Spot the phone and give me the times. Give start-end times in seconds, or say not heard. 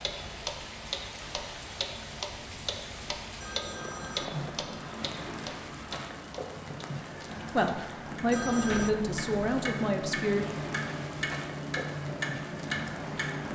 3.4-4.4, 8.3-8.9.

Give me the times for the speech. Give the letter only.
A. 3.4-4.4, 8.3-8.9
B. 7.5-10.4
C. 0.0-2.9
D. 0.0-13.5
B.